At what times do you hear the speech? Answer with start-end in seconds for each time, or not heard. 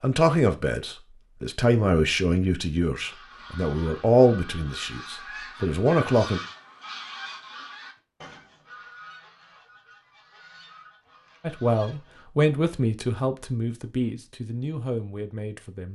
0.0-6.4, 11.4-15.8.